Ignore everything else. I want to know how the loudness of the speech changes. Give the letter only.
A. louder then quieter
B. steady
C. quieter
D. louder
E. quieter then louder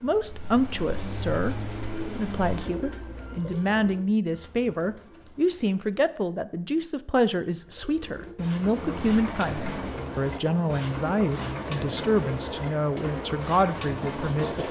B.